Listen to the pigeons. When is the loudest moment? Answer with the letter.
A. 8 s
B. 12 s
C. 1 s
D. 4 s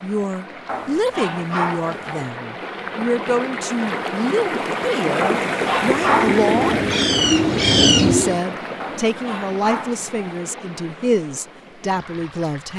A.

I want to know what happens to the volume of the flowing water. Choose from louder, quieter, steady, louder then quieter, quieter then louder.
louder then quieter.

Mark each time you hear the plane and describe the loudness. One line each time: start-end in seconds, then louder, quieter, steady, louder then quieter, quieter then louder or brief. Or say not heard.
not heard.